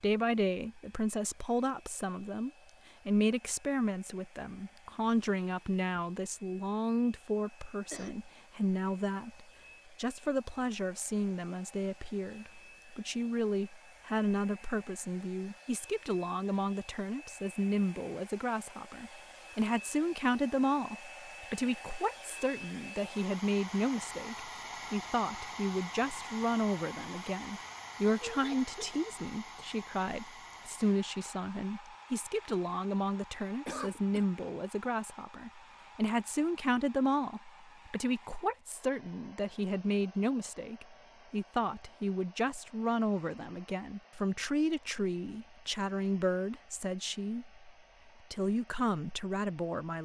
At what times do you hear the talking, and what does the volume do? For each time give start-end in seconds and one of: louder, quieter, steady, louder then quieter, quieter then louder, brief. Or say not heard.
0.0-47.6 steady
48.3-49.9 brief.